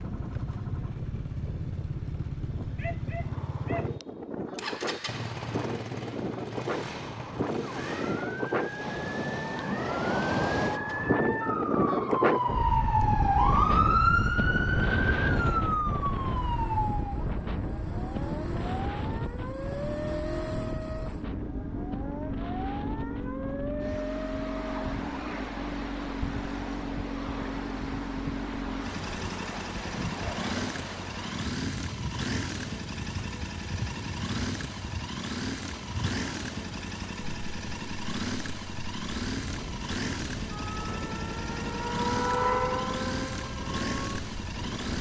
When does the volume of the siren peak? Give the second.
14 s.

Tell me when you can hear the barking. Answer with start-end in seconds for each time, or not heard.
2.8-3.9.